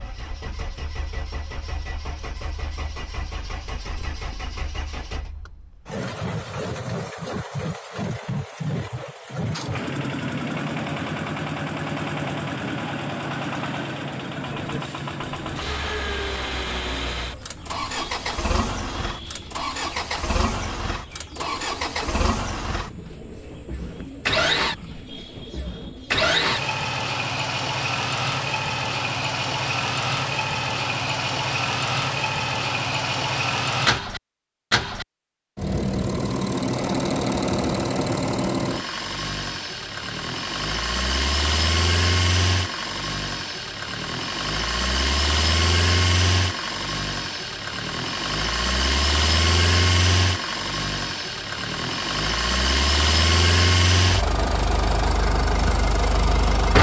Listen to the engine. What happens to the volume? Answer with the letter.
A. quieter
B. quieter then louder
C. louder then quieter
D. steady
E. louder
E.